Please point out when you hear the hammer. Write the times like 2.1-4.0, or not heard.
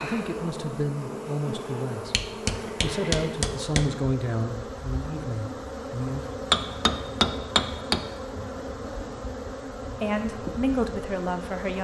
2.1-3.9, 6.5-8.1.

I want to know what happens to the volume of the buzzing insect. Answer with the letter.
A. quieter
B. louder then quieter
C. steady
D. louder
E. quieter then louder
C.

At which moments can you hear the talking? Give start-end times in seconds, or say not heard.
0.0-2.1, 2.8-6.2, 9.9-11.7.